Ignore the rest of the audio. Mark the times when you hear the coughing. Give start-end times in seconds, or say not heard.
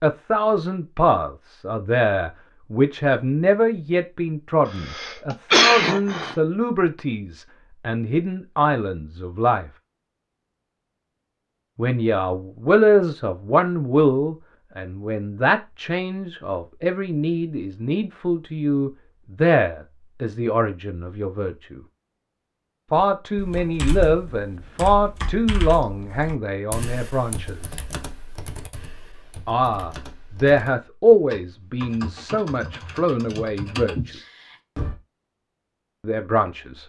4.7-6.3.